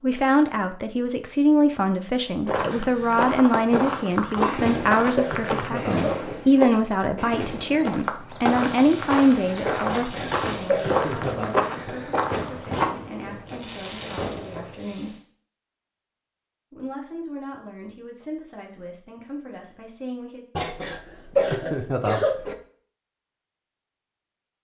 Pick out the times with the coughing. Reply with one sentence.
The coughing can be heard from 4.3 to 6.3 s, from 9.8 to 11.5 s and from 20.6 to 22.6 s.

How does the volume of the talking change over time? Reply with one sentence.
The loudness of the talking goes down.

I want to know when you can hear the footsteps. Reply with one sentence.
You can hear the footsteps from 2.5 to 12.9 s.